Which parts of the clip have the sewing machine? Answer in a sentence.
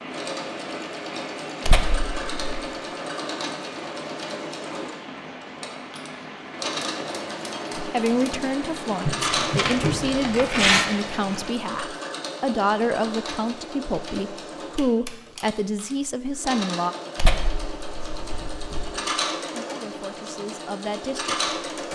You can hear the sewing machine from 0.0 to 21.9 s.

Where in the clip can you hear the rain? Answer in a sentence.
You can hear the rain from 0.0 to 11.6 s.